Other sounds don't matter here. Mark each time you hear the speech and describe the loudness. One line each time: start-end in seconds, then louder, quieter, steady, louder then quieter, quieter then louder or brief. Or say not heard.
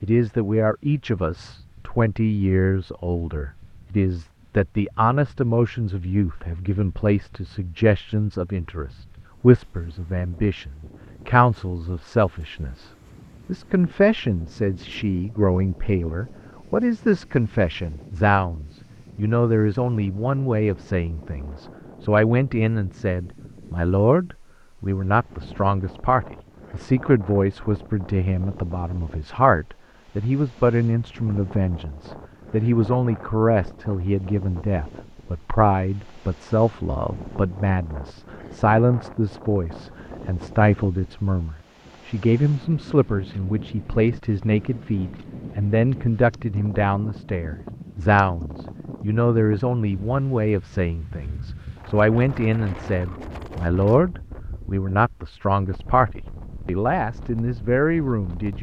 0.0-58.5 steady.